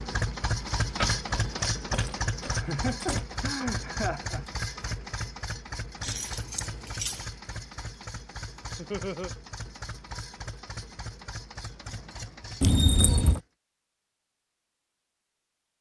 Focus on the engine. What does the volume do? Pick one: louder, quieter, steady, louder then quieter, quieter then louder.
quieter.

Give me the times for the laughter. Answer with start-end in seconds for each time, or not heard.
2.5-4.5, 8.8-9.3.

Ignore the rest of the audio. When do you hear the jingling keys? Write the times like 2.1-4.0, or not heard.
0.8-3.2, 6.0-7.3, 12.6-13.4.